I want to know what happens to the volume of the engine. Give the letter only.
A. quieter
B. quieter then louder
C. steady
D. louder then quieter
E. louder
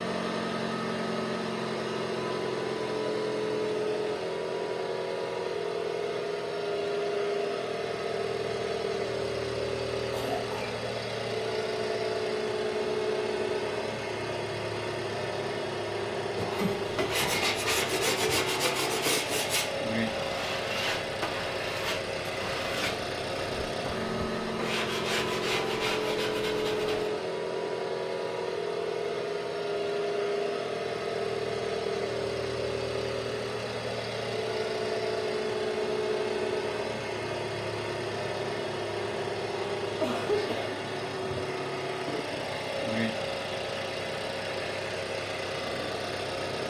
C.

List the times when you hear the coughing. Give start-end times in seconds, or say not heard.
10.1-10.8, 16.4-17.4, 40.0-40.8.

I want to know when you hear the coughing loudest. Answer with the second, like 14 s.
40 s.